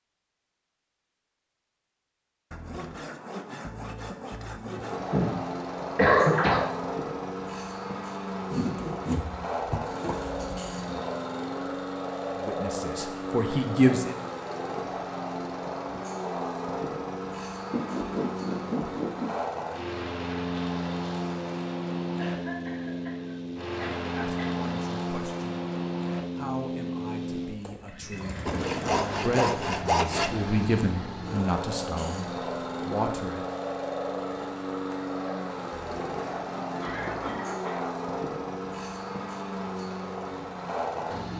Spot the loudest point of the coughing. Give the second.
6 s.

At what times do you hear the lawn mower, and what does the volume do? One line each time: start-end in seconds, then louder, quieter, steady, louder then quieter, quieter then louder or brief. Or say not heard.
4.7-41.3 steady.